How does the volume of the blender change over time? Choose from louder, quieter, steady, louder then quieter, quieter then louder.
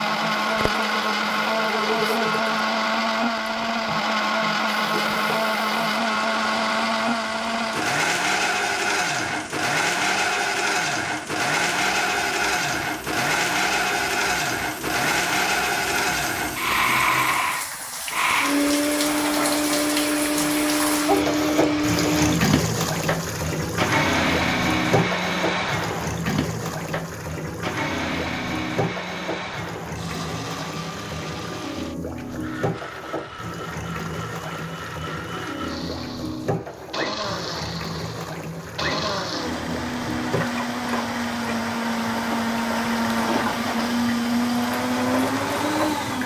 quieter then louder.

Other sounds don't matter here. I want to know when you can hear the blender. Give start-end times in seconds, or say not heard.
0.0-46.2.